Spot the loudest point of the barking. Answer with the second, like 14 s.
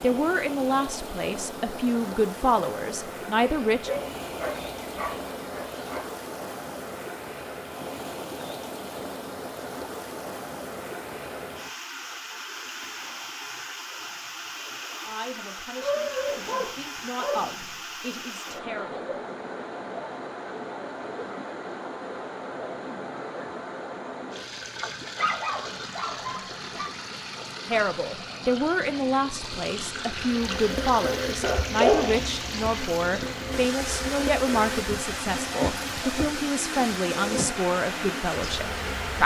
32 s.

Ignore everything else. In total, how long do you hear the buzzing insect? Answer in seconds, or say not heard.
9 s.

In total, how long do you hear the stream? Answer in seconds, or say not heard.
39 s.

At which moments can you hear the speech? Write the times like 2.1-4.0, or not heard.
0.0-3.9, 15.0-19.0, 27.6-39.2.